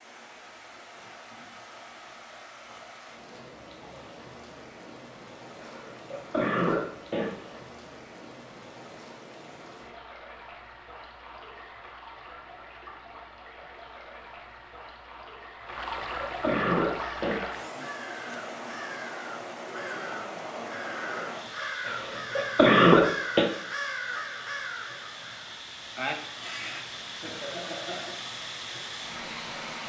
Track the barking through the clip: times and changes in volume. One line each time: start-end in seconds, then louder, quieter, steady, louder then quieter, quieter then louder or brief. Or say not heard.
not heard.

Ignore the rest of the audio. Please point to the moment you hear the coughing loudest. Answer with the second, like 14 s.
23 s.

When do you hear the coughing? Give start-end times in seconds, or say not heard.
5.6-7.6, 15.7-17.4, 21.9-23.5.